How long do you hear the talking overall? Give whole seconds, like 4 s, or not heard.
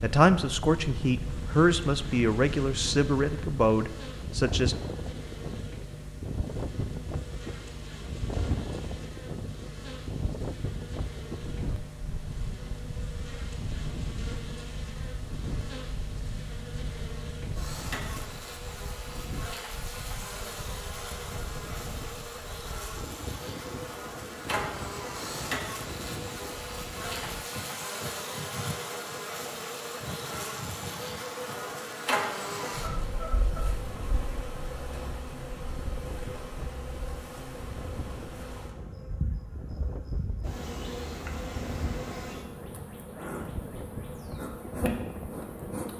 5 s.